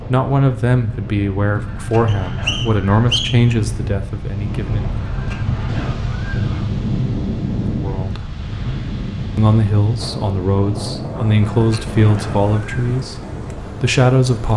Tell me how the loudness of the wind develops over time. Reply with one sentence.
The volume of the wind goes up, then down.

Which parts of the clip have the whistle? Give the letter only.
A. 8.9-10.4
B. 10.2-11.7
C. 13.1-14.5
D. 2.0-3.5
D.